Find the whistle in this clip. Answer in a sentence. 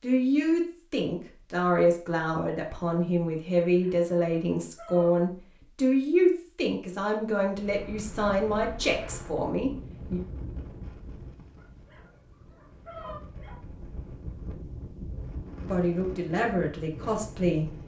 The whistle can't be heard in this clip.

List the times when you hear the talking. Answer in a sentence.
You can hear the talking from 0.0 to 10.2 s and from 15.7 to 17.8 s.